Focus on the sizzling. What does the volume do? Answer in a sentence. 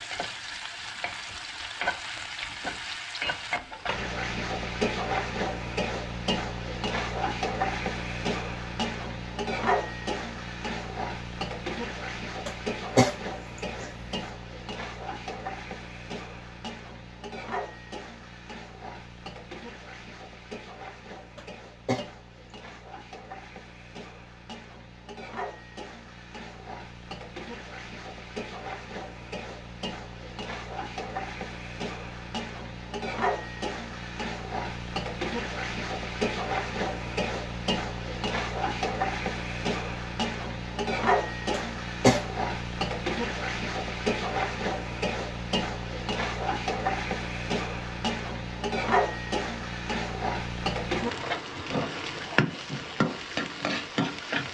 The volume of the sizzling goes down, then up.